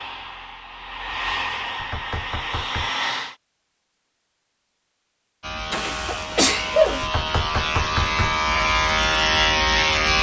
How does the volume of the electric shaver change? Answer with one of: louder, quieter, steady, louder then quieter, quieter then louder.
louder.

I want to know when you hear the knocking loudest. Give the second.
8 s.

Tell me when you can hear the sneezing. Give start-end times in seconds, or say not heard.
5.7-7.0.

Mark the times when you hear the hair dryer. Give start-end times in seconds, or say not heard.
0.0-3.4.